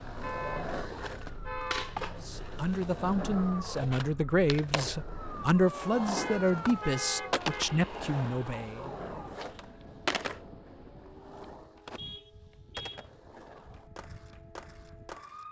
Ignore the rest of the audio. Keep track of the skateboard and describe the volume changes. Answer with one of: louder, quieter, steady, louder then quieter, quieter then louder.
quieter.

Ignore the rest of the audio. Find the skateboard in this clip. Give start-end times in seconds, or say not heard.
0.0-15.4.